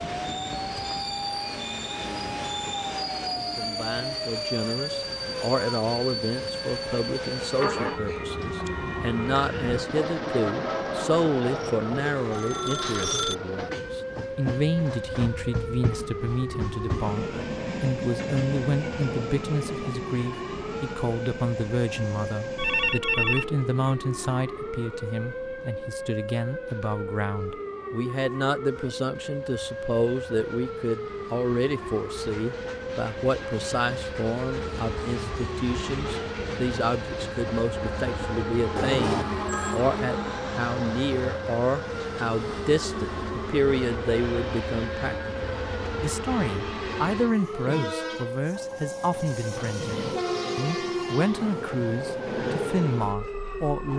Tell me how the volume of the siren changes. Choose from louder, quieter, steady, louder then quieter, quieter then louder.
steady.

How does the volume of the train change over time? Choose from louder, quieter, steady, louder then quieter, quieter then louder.
quieter then louder.